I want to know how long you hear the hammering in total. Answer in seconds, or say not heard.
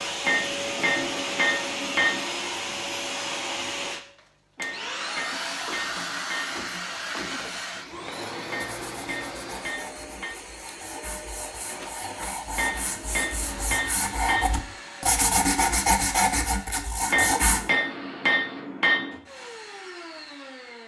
10 s.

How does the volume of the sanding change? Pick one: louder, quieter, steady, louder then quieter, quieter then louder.
louder.